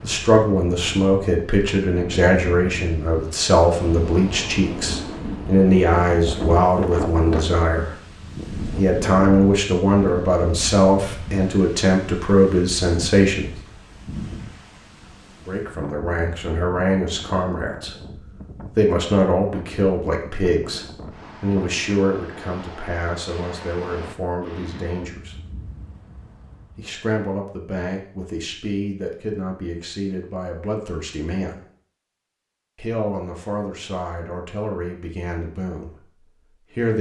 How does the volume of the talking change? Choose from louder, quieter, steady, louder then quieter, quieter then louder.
quieter.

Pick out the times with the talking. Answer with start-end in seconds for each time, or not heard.
0.0-8.0, 8.7-13.5, 15.4-25.4, 26.8-31.6, 32.8-36.9.